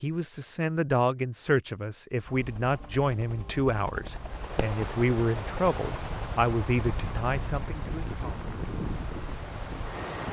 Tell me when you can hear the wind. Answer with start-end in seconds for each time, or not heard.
4.0-10.2.